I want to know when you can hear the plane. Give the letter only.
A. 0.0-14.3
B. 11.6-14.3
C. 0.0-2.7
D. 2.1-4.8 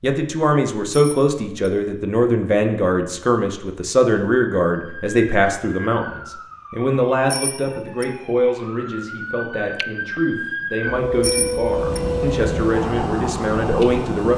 B.